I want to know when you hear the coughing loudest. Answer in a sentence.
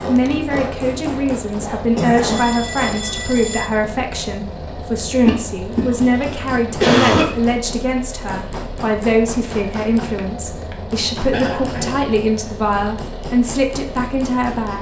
The loudest moment of the coughing is at 7 seconds.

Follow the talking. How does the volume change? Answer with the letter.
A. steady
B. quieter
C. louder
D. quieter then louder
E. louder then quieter
A.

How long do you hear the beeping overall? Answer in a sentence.
You can hear the beeping for 2 seconds altogether.